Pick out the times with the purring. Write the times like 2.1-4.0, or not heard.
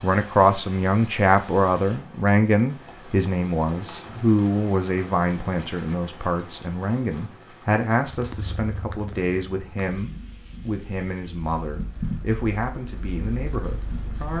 8.1-14.3.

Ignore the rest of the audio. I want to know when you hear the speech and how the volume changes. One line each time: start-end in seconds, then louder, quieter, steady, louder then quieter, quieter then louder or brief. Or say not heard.
0.0-14.3 quieter.